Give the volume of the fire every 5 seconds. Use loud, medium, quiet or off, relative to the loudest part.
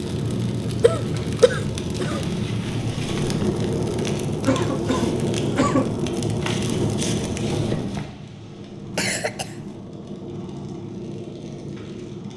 loud, loud, medium.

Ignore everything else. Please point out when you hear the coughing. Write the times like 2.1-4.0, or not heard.
0.8-2.2, 4.5-5.9, 8.9-9.6.